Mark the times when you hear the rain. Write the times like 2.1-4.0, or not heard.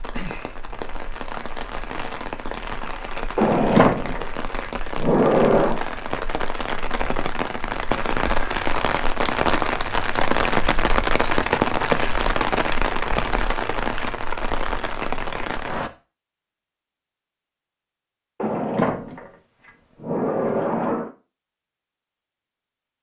0.0-15.9.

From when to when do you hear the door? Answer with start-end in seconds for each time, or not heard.
3.4-5.8, 18.4-21.1.